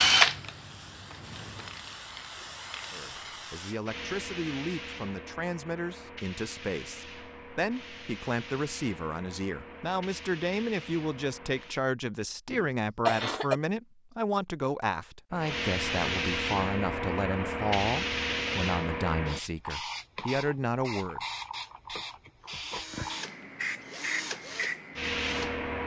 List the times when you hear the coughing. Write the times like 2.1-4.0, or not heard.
12.5-13.6.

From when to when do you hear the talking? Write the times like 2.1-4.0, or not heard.
2.9-21.2.